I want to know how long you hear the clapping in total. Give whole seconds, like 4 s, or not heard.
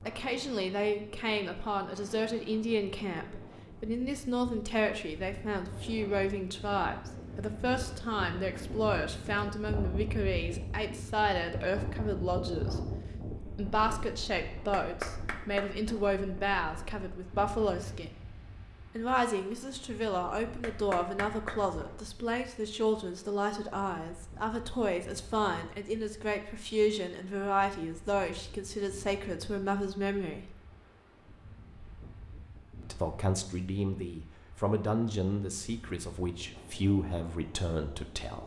3 s.